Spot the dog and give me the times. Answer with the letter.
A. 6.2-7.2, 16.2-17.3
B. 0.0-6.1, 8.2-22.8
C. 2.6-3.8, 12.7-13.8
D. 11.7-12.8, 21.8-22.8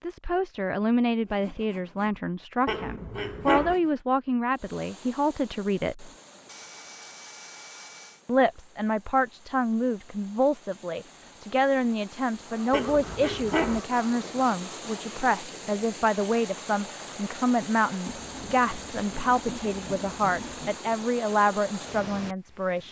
C.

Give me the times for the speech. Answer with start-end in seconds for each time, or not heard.
0.0-6.1, 8.2-22.8.